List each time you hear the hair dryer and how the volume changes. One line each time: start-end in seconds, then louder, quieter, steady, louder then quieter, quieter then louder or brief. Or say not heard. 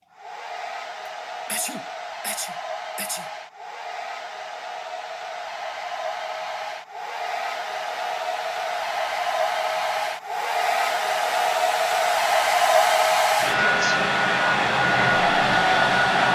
0.1-16.2 louder.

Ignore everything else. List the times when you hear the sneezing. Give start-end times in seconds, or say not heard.
1.4-3.3, 13.7-14.1.